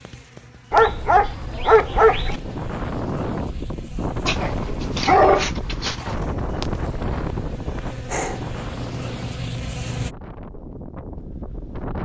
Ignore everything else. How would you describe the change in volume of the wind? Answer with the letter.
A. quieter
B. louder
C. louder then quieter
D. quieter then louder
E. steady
A.